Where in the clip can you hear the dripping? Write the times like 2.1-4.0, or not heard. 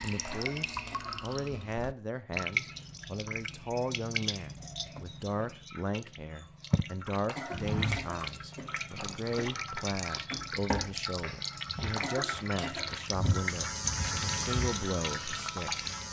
0.0-16.0.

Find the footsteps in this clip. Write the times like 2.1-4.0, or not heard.
7.5-14.7.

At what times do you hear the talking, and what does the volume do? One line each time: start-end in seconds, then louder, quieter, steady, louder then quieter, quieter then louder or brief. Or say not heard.
0.0-15.7 steady.